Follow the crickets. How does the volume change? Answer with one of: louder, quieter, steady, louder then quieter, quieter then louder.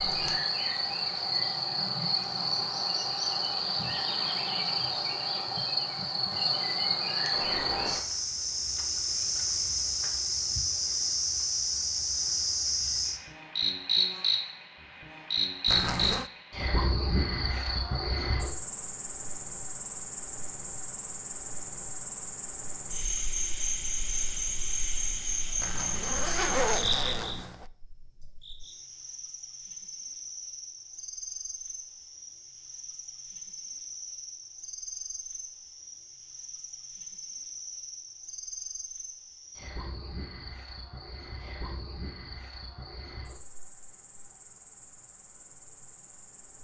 quieter.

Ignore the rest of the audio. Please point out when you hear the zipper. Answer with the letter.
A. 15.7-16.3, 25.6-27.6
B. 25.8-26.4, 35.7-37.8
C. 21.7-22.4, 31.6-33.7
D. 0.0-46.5
A.